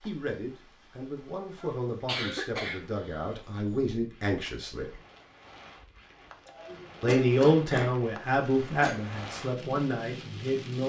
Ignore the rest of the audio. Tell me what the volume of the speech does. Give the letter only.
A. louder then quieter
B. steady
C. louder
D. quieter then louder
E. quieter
A.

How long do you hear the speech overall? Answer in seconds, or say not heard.
9 s.